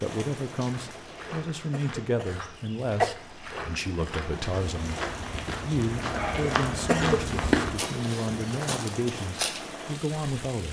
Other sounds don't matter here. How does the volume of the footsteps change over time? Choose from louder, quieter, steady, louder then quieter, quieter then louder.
louder then quieter.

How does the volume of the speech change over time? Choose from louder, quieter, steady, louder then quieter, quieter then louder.
steady.